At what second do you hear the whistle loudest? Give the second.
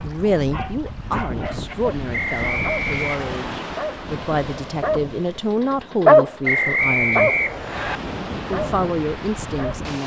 7 s.